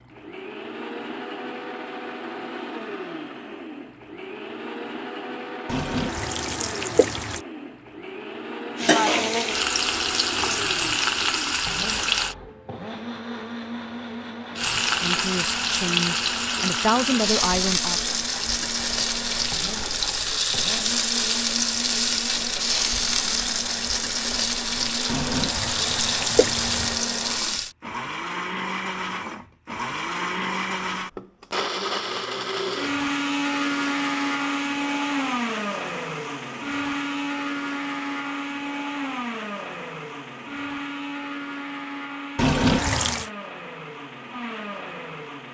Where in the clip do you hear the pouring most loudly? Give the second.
43 s.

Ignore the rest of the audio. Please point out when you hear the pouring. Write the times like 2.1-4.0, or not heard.
5.7-7.4, 25.1-27.0, 42.4-43.3.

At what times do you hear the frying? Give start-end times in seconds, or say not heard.
8.8-12.3, 14.6-27.8.